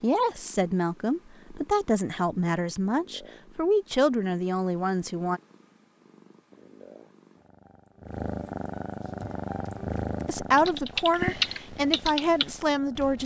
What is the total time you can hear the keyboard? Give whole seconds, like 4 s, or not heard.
4 s.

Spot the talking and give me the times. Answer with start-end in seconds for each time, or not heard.
0.0-5.4, 10.2-13.2.